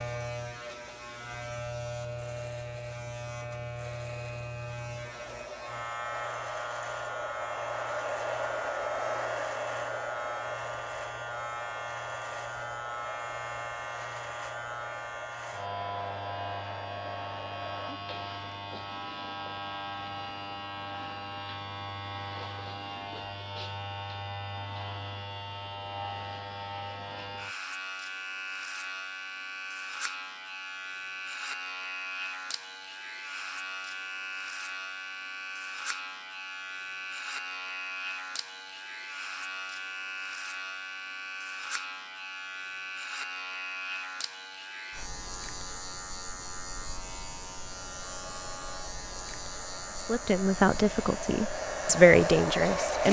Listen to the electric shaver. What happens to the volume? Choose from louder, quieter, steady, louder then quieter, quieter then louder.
steady.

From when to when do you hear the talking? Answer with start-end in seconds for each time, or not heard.
50.0-53.0.